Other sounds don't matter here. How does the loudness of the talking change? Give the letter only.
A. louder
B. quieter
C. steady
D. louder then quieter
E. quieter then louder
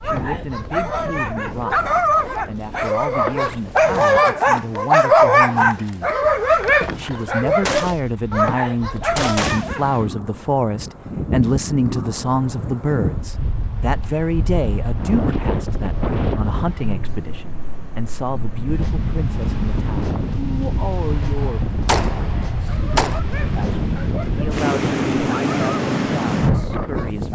D.